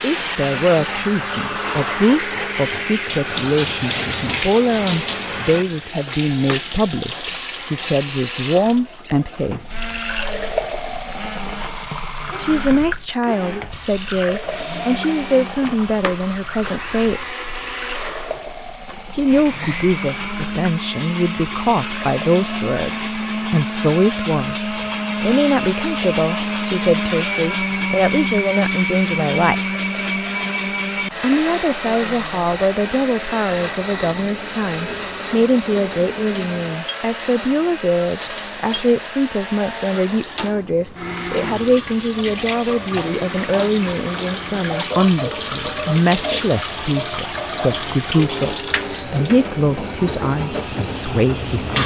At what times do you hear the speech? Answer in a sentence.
The speech can be heard from 0.0 to 9.9 s, from 12.4 to 17.4 s, from 19.1 to 29.7 s and from 31.2 to 51.8 s.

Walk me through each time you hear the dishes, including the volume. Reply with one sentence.
You can't hear the dishes here.